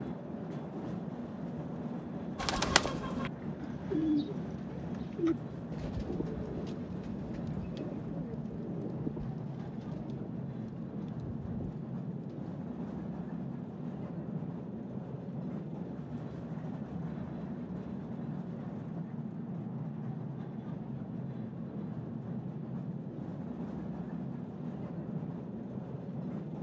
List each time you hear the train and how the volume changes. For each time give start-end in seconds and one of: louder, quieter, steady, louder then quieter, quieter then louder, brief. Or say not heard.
0.0-26.5 steady.